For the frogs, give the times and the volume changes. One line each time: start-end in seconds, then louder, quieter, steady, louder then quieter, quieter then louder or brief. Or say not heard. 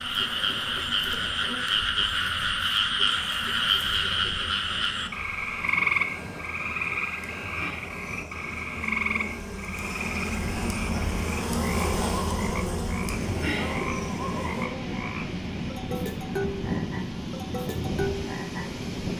0.0-19.1 quieter.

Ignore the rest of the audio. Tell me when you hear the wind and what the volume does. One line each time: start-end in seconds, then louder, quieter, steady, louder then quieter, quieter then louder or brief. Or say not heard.
0.0-19.1 louder.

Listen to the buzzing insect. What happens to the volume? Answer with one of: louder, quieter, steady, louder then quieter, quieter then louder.
louder.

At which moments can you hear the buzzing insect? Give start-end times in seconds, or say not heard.
0.0-14.7.